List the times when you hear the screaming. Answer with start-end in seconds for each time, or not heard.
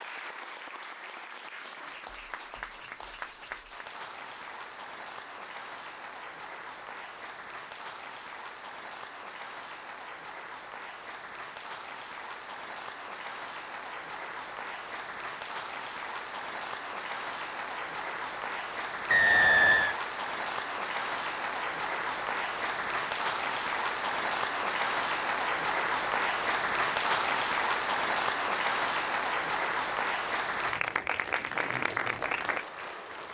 not heard.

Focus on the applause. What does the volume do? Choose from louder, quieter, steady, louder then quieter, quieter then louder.
louder.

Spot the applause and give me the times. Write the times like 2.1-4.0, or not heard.
0.0-33.2.